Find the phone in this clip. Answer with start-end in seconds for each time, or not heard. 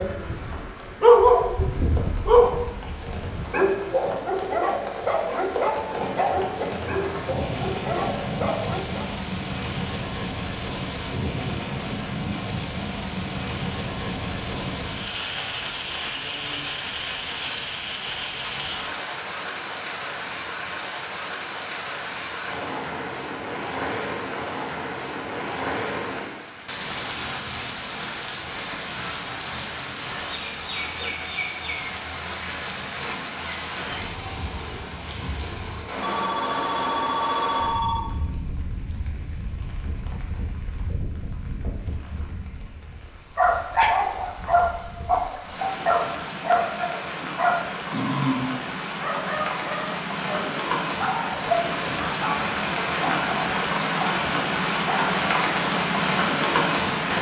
36.0-38.0.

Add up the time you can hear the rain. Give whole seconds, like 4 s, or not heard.
57 s.